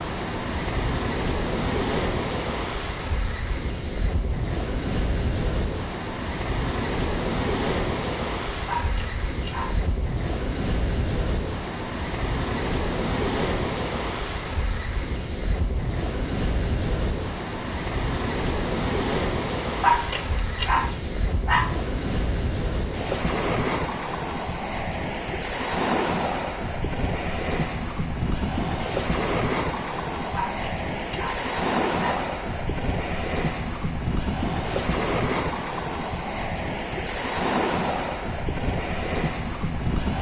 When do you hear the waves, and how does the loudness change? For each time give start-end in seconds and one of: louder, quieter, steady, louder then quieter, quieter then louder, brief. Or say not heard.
0.0-40.1 steady.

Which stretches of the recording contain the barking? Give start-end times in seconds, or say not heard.
8.7-9.8, 19.8-21.7, 30.3-32.2.